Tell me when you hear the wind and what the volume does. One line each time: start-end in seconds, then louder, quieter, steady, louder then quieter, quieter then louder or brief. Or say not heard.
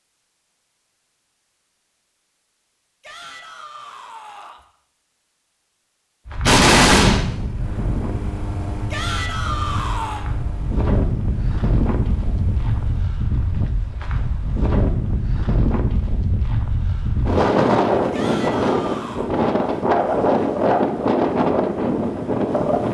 6.2-22.8 louder.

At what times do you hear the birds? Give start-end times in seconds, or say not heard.
not heard.